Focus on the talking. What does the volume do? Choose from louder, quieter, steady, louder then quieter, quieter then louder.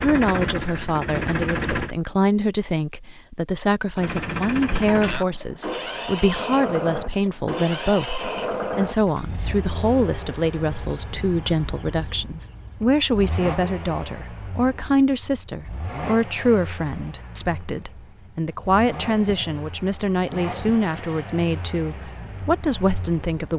steady.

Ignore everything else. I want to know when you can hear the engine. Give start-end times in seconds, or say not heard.
0.0-1.9, 4.0-23.5.